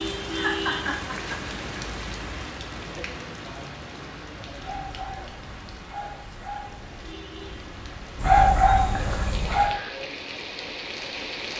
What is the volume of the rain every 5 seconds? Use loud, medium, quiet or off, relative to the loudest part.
loud, medium, loud.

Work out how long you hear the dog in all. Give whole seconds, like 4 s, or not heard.
5 s.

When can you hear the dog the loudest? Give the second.
8 s.